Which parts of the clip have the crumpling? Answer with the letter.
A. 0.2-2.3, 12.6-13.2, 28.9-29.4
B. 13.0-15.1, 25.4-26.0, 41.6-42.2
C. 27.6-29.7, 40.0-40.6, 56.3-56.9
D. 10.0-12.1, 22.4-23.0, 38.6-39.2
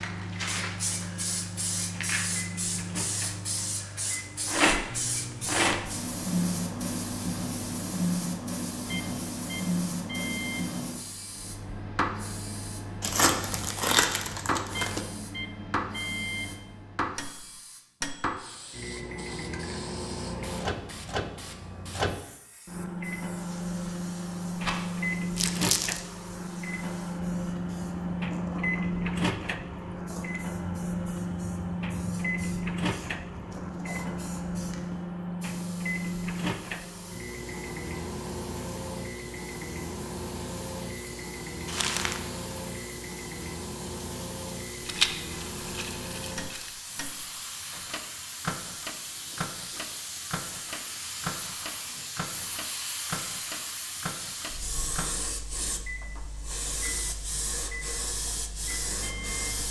B.